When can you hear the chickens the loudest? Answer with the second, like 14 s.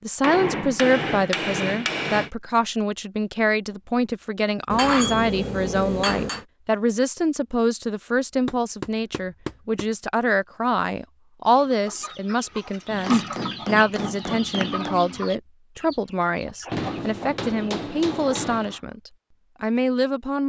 13 s.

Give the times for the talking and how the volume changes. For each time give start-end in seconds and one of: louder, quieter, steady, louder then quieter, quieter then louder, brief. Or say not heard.
0.0-20.4 steady.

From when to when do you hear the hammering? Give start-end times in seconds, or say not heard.
0.2-2.3, 4.7-6.5, 8.4-9.8, 12.9-14.9, 16.7-18.8.